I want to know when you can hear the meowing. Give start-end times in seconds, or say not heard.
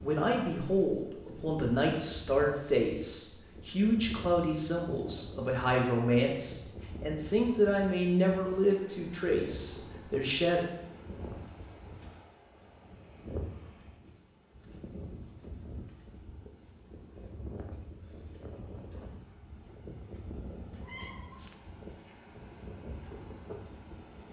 20.8-21.6.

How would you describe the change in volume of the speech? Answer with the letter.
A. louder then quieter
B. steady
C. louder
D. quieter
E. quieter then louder
B.